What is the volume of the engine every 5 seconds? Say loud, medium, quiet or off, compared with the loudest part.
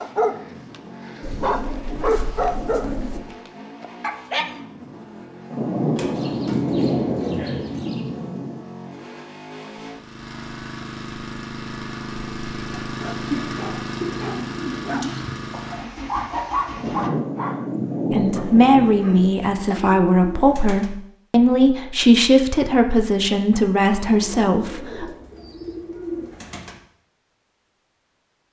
medium, medium, loud, loud, off, off.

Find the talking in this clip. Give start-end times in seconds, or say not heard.
18.1-25.1.